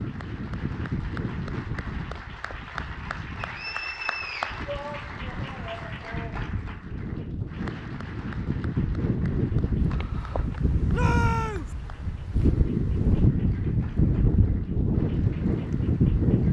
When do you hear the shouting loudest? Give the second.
11 s.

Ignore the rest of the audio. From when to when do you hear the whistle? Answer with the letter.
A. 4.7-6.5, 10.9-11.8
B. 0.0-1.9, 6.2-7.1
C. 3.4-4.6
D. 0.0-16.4
C.